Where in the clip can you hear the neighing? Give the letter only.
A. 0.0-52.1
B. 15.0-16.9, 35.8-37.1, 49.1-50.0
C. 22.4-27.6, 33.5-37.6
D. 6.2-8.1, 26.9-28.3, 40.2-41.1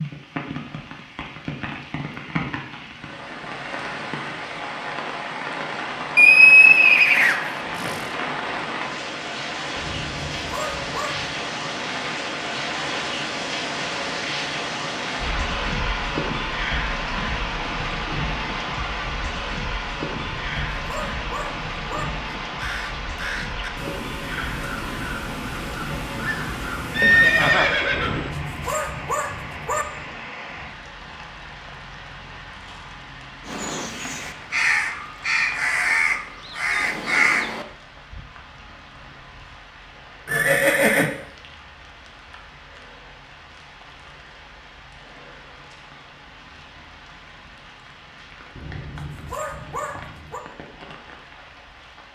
D.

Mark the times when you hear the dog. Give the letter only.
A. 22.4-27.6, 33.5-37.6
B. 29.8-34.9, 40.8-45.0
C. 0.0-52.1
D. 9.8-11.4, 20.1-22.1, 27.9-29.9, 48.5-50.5
D.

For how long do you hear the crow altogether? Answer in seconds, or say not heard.
9 s.